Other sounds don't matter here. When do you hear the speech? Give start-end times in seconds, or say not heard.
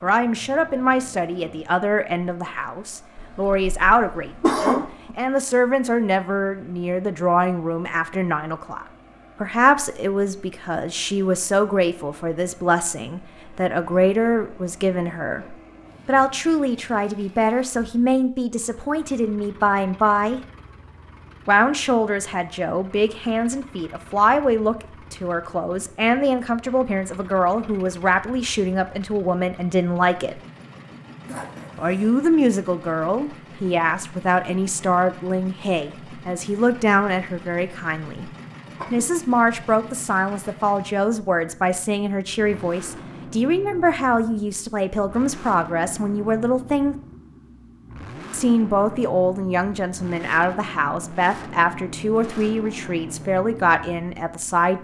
0.0-20.4, 21.4-30.4, 31.8-38.3, 38.9-47.0, 48.3-54.7.